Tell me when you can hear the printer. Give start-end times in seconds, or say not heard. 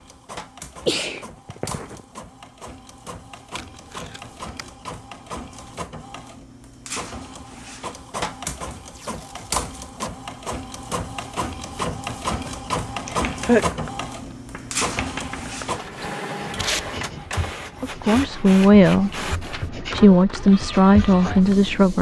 0.0-21.9.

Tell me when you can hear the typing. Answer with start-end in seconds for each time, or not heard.
not heard.